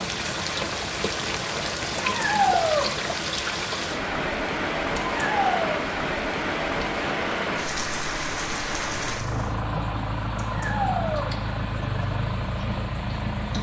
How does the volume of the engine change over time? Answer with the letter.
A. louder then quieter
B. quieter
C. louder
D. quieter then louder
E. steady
E.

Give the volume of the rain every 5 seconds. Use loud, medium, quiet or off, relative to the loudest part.
loud, loud, quiet.